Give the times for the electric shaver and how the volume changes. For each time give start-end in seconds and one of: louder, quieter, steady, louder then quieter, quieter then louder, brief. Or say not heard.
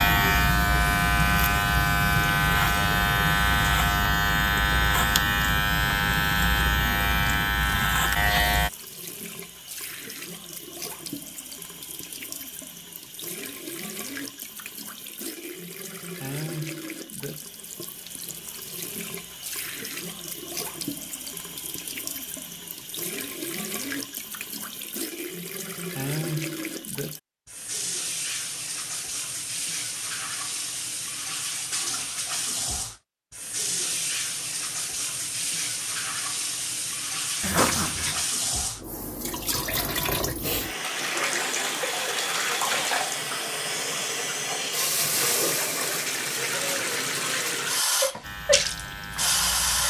0.0-8.7 steady
48.2-49.8 brief.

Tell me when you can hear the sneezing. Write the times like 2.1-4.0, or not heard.
37.4-38.2.